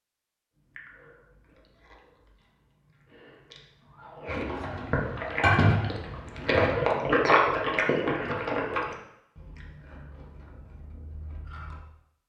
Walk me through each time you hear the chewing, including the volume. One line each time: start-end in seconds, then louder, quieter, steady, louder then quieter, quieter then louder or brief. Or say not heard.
0.7-11.8 louder then quieter.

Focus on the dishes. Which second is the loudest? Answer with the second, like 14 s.
6 s.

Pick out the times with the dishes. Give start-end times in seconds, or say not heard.
4.2-6.8.